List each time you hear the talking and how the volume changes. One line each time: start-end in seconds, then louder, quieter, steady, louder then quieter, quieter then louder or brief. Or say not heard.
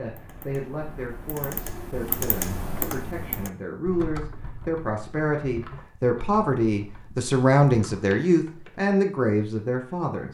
0.0-10.2 louder.